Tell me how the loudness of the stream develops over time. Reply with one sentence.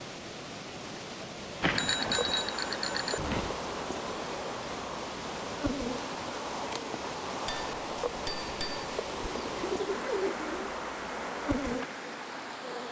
The volume of the stream stays about the same.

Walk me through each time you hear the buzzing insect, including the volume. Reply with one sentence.
You can hear the buzzing insect from 1.8 to 12.8 s, at a steady volume.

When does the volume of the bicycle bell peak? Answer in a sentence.
The loudest moment of the bicycle bell is at 2 seconds.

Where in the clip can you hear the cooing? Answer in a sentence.
You can hear the cooing from 9.2 to 10.7 s.